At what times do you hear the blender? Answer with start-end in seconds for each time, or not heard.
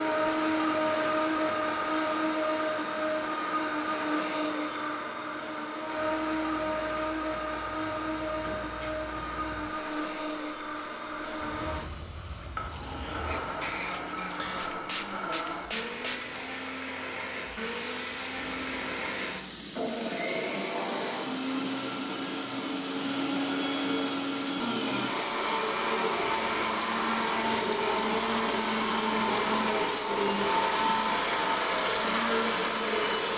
0.0-33.3.